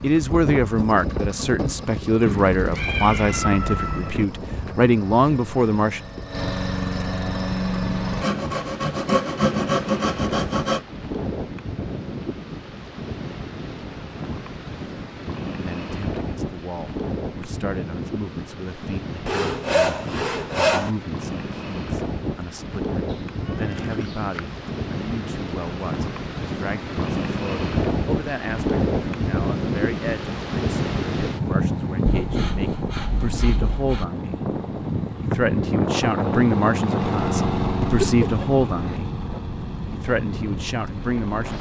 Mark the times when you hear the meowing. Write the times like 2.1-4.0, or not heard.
2.2-4.2, 23.1-24.6, 37.8-39.0.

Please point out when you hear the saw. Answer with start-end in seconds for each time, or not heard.
8.2-10.8, 19.2-20.9, 32.0-34.0.